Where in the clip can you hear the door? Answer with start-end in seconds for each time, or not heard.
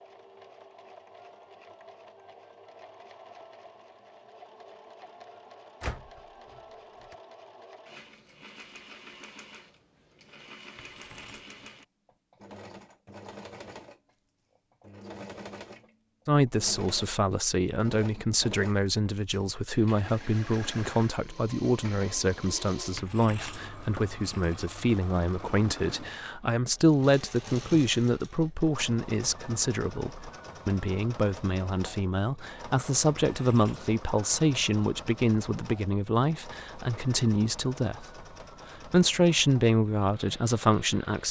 5.8-7.2.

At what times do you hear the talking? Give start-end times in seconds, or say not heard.
16.2-38.0, 38.9-41.2.